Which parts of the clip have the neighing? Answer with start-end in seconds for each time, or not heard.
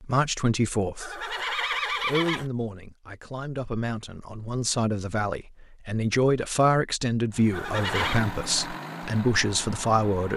1.0-2.5, 7.5-8.2.